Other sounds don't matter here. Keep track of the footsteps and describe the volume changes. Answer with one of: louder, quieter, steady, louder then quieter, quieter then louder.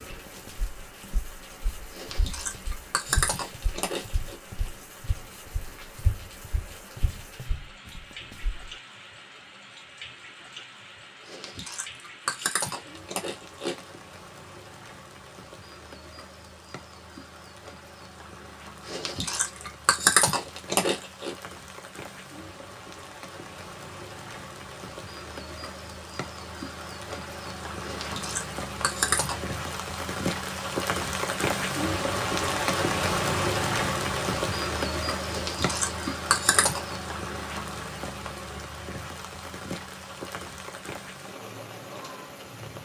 louder.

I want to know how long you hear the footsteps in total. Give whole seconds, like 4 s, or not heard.
9 s.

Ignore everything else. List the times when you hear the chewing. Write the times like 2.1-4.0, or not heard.
1.9-4.3, 11.2-13.8, 18.9-21.3, 27.8-29.6, 35.3-36.8.